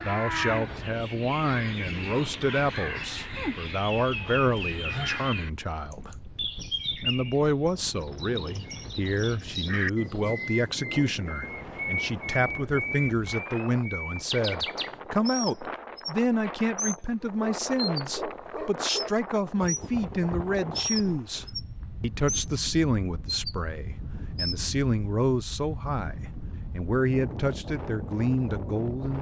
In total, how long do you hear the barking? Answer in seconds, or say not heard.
2 s.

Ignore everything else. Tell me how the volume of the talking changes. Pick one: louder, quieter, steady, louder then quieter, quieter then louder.
steady.